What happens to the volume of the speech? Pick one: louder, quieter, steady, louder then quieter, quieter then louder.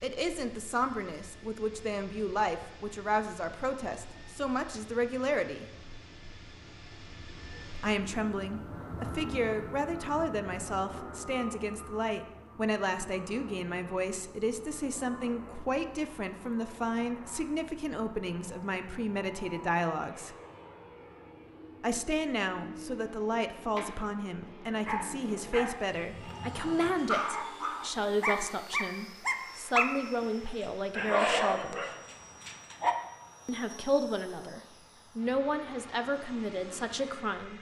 steady.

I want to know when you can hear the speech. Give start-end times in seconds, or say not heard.
0.0-5.7, 7.8-20.4, 21.8-31.8, 33.5-37.5.